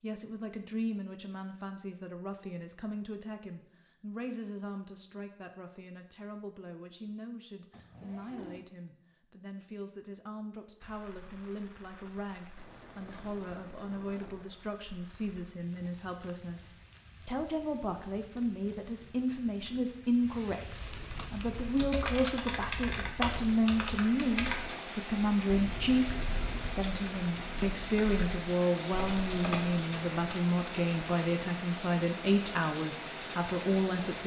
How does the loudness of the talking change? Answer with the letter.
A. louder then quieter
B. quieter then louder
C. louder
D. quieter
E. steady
C.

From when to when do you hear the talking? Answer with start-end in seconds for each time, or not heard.
0.0-34.2.